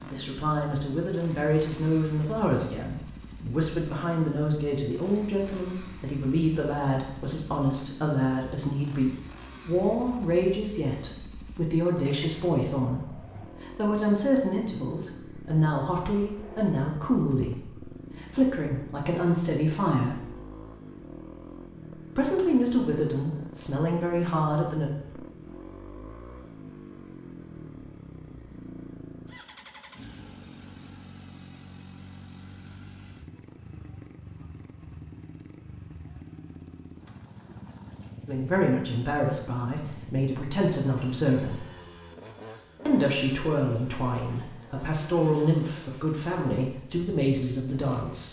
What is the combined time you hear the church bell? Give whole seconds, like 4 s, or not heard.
not heard.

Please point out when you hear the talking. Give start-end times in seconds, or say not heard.
0.0-20.3, 22.1-24.9, 38.2-41.6, 42.9-48.2.